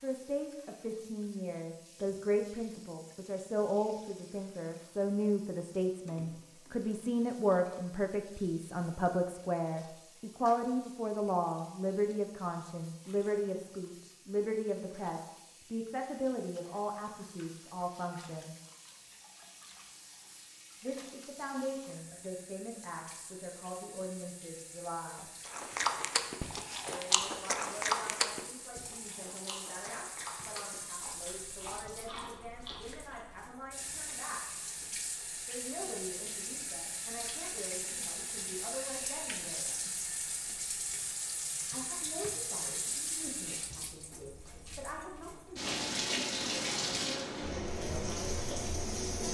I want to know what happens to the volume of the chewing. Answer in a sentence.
The loudness of the chewing goes down.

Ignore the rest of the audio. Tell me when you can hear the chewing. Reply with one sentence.
The chewing can be heard from 25.4 to 33.2 s.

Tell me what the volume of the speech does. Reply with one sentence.
The loudness of the speech goes down.